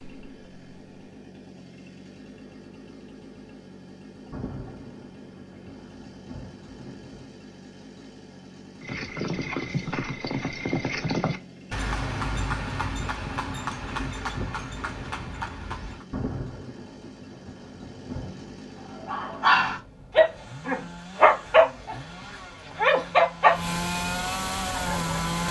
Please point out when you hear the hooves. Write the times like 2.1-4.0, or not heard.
8.8-16.1.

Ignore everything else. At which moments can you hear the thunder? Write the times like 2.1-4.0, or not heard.
4.3-7.3, 16.1-18.6.